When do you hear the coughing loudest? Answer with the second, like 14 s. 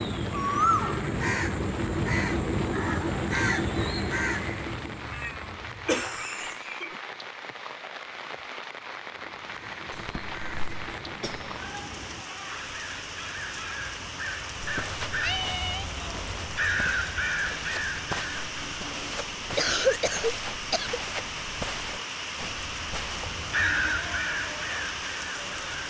20 s.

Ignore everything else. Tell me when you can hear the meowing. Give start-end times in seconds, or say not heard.
4.7-6.5, 15.2-15.8.